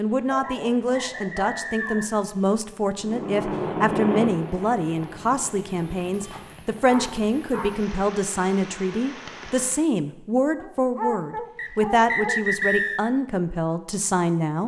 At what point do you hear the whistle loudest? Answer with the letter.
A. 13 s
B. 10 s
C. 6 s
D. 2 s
A.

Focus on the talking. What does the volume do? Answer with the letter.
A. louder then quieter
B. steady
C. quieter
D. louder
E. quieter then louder
B.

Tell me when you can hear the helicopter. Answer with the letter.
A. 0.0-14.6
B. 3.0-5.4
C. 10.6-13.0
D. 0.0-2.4
B.